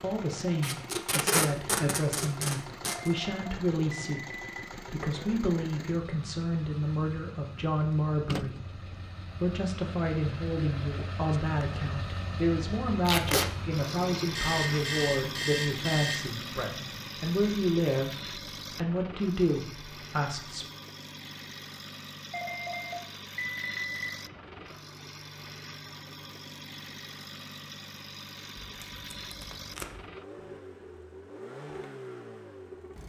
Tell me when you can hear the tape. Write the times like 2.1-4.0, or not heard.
0.6-3.1, 13.1-13.5, 28.6-30.1.